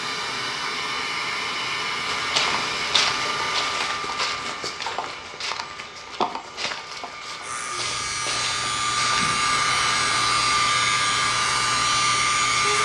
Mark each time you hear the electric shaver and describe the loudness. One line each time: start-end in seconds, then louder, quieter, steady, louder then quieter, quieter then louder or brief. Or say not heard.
7.4-12.7 steady.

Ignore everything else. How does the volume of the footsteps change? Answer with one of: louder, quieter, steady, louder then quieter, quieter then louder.
quieter.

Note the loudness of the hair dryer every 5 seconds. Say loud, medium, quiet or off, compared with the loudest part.
medium, medium, loud.